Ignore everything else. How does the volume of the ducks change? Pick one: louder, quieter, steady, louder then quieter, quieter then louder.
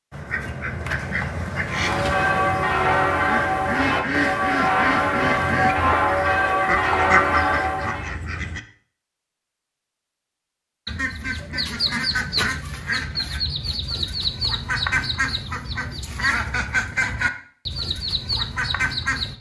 steady.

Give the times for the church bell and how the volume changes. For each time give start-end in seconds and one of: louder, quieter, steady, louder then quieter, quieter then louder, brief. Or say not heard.
1.6-8.2 steady.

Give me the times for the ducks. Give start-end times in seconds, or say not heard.
0.1-8.6, 10.8-19.3.